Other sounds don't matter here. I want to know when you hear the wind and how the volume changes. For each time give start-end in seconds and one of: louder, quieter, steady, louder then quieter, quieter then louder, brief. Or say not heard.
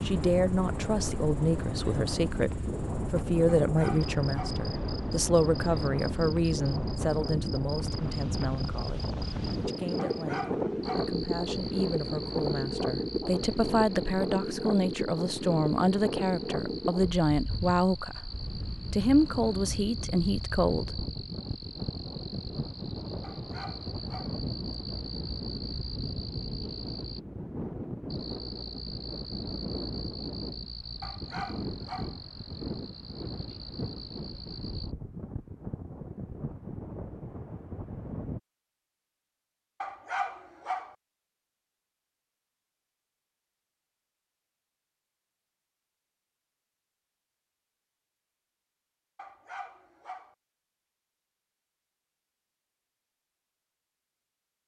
0.0-38.4 quieter.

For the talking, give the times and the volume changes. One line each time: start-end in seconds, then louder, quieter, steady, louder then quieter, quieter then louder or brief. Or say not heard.
0.0-21.0 quieter then louder.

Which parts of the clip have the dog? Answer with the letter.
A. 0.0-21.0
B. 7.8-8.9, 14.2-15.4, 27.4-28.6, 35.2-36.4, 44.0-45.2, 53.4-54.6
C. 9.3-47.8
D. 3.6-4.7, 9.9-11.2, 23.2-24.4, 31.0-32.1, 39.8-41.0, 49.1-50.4
D.